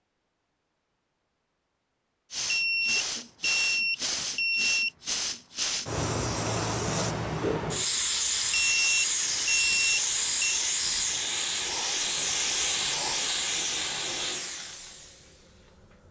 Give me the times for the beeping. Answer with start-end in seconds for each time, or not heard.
2.4-4.9, 8.5-10.6.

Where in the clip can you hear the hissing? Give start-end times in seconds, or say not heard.
2.3-16.0.